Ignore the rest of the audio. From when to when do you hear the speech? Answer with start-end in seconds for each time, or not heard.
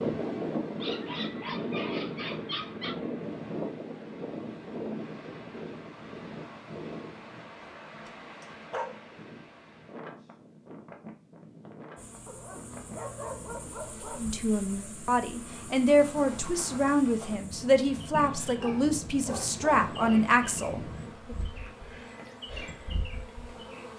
14.2-21.4.